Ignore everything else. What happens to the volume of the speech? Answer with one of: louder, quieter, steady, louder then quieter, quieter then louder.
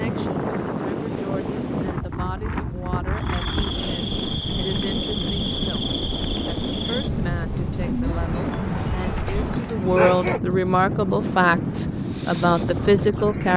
louder.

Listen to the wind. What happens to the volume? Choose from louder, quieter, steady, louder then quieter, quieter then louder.
steady.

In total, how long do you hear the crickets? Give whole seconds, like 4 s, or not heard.
10 s.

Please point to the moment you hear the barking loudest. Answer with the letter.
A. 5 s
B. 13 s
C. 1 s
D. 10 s
D.